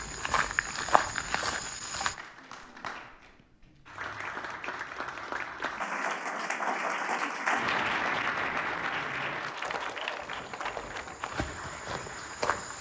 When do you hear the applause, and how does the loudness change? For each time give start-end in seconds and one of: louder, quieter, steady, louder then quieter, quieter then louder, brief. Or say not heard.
0.0-12.7 louder then quieter.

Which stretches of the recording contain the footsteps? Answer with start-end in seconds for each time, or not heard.
0.0-2.1, 9.6-12.7.